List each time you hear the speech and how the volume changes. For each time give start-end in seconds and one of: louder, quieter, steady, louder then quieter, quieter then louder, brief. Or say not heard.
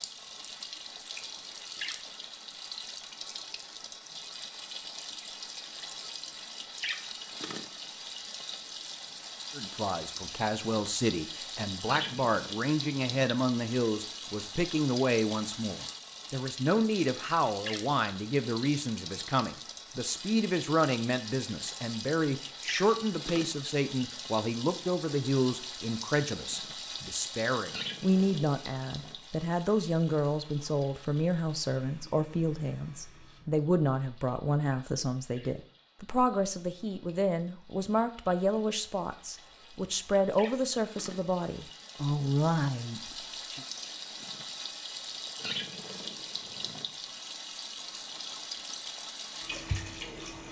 9.6-43.6 steady.